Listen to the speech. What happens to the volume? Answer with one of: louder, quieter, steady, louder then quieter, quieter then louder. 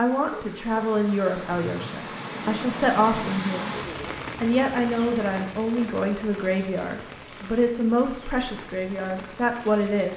steady.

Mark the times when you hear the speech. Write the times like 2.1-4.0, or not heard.
0.0-3.7, 4.4-10.1.